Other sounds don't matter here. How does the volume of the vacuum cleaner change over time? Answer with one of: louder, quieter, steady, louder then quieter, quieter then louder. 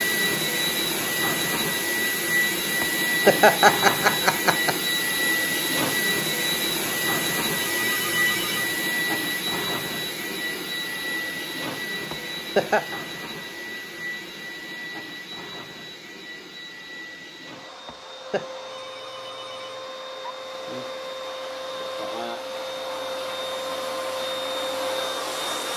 quieter then louder.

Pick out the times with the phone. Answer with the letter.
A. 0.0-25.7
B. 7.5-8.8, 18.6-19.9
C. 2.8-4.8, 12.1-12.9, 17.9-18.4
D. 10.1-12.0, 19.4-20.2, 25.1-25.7
B.